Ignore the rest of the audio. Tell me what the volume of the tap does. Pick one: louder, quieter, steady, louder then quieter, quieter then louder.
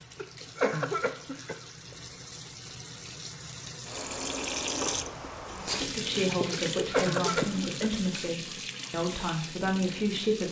louder then quieter.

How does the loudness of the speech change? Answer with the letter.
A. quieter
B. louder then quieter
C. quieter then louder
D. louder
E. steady
E.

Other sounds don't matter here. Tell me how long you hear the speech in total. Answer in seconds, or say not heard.
5 s.